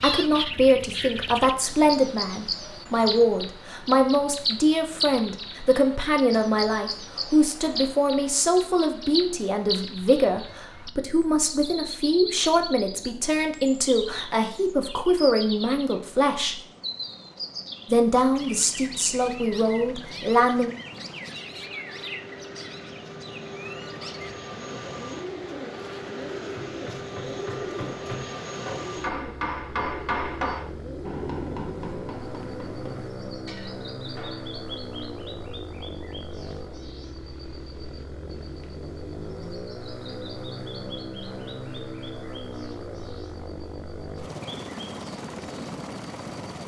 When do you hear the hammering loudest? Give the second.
30 s.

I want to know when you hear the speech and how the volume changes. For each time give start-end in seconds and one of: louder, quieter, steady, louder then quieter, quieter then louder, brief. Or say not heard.
0.0-16.6 steady
17.9-20.7 brief.